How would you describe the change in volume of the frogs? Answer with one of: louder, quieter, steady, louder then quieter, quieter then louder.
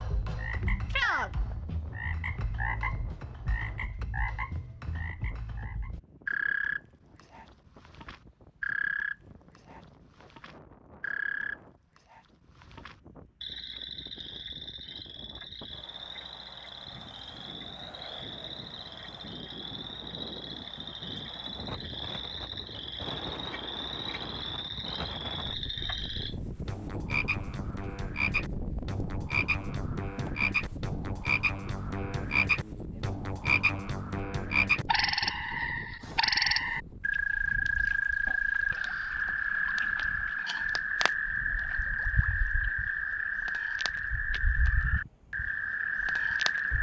quieter then louder.